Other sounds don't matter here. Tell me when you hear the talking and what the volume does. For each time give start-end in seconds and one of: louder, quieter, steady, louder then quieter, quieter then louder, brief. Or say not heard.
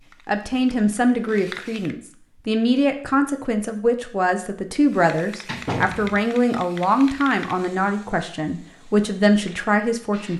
0.2-10.3 steady.